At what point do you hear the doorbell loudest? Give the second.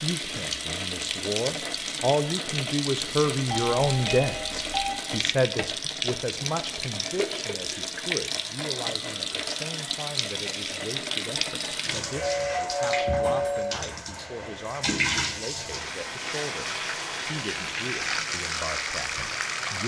13 s.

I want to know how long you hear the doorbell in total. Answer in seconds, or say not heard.
3 s.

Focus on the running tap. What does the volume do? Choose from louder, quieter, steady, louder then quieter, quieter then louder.
steady.